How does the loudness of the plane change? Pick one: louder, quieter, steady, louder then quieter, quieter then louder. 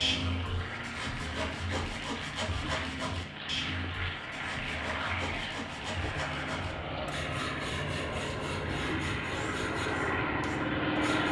louder.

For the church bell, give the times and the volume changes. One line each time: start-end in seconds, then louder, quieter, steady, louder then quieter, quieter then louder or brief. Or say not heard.
not heard.